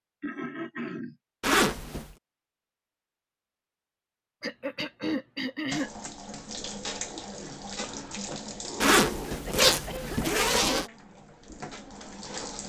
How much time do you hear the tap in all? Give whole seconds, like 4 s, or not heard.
7 s.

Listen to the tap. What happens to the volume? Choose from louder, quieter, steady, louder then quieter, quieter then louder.
quieter.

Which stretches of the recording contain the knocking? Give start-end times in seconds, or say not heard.
not heard.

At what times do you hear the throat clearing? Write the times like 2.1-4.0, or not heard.
0.2-1.1, 4.4-5.9, 9.2-10.9.